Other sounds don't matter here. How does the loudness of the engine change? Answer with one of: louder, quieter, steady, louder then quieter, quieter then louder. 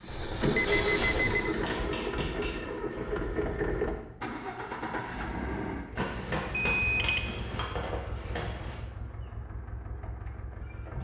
quieter.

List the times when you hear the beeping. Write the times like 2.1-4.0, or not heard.
0.1-1.5, 6.5-7.3.